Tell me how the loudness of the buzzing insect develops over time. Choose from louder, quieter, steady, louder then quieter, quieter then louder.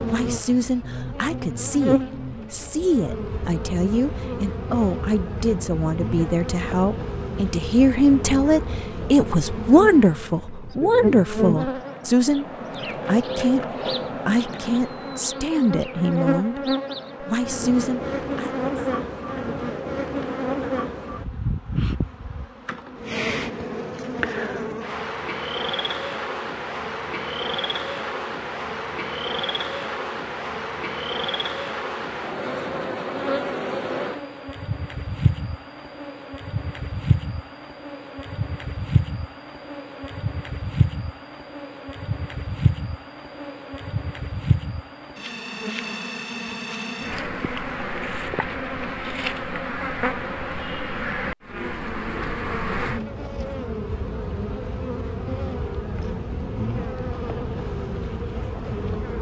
steady.